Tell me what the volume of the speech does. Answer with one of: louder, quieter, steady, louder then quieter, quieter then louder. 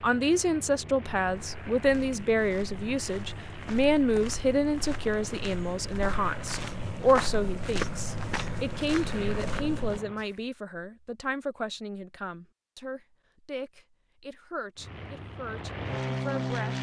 quieter.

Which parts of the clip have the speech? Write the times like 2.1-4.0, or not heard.
0.0-16.7.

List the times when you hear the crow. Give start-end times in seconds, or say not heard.
not heard.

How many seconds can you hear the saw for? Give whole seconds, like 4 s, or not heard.
not heard.